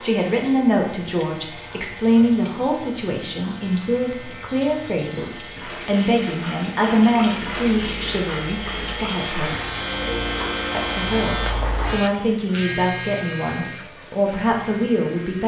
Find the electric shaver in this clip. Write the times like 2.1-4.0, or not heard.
0.0-15.4.